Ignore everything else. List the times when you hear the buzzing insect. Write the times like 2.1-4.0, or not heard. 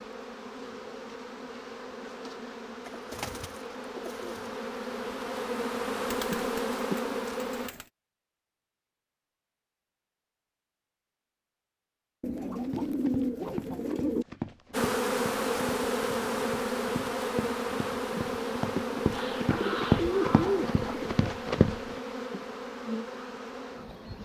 0.0-7.7, 14.7-24.2.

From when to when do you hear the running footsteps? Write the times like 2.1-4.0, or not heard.
12.6-21.9.